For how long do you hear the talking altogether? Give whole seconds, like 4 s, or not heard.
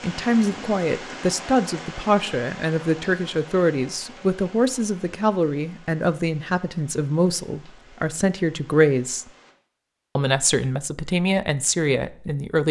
12 s.